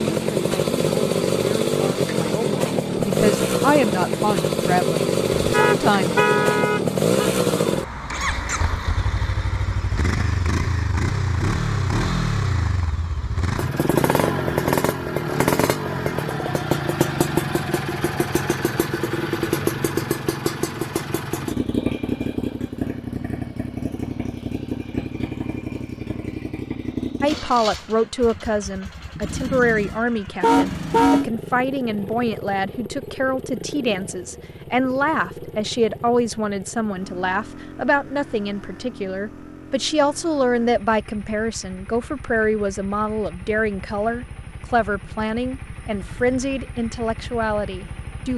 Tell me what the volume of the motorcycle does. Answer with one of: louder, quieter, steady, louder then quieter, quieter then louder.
quieter.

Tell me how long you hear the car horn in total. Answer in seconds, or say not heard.
3 s.